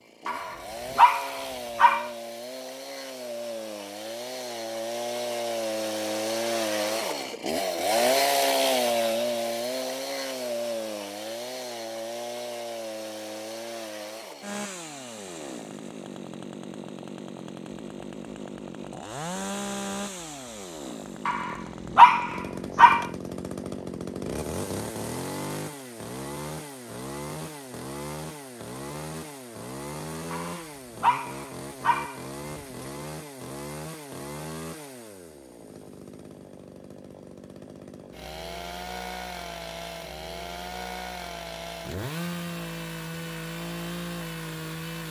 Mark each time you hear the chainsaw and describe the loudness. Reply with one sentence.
You can hear the chainsaw from 0.0 to 45.0 s, getting quieter.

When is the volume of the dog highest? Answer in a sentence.
The volume of the dog peaks at 22 seconds.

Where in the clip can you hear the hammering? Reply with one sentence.
The hammering can't be heard in this clip.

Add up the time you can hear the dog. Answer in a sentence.
You can hear the dog for 6 seconds altogether.